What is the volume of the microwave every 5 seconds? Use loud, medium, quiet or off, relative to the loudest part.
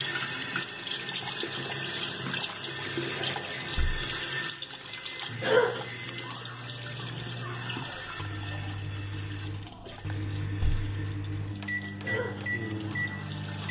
quiet, medium, loud.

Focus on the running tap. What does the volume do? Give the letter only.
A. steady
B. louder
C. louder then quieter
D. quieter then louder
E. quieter
E.